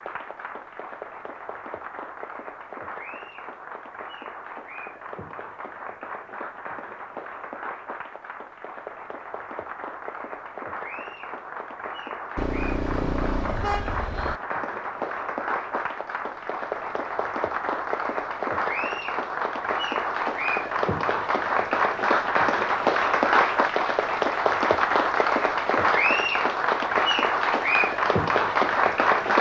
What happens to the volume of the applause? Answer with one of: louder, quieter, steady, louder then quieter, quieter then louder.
louder.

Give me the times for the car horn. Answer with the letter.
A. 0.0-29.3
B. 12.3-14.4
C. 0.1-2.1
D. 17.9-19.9
B.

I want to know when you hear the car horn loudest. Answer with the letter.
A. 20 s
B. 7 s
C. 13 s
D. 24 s
C.